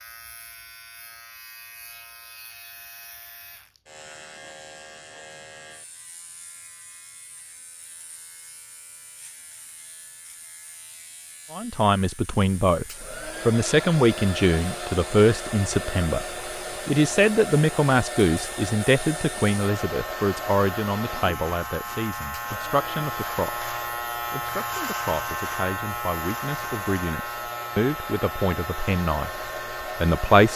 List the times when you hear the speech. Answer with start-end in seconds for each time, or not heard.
11.5-30.5.